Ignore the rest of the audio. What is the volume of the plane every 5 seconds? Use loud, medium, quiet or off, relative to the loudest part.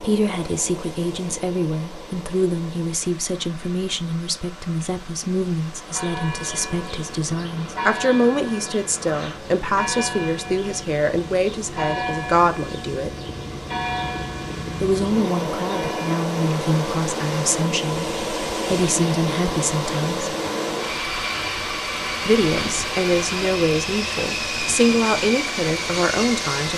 quiet, quiet, medium, loud, loud, loud.